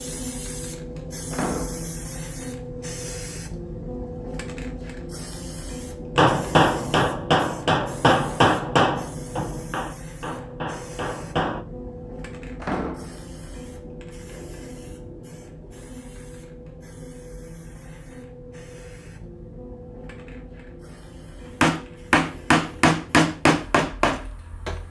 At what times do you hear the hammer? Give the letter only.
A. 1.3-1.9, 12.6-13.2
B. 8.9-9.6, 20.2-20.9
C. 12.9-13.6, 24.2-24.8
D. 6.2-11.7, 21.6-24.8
D.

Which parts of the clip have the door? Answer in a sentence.
The door can be heard from 1.3 to 1.9 s and from 12.6 to 13.2 s.